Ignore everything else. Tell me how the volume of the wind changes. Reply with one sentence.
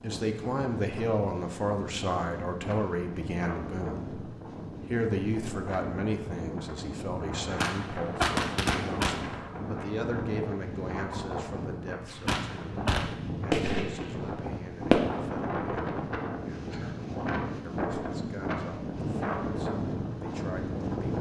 The volume of the wind goes up.